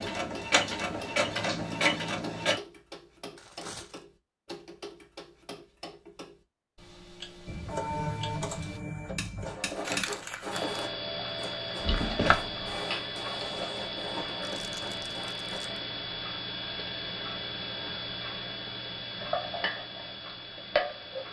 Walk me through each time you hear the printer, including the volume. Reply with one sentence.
The printer can be heard briefly from 0.0 to 2.6 s; and from 7.5 to 15.6 s, getting quieter.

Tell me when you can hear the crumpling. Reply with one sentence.
You can hear the crumpling from 3.4 to 4.0 s, from 9.8 to 10.8 s and from 14.4 to 15.8 s.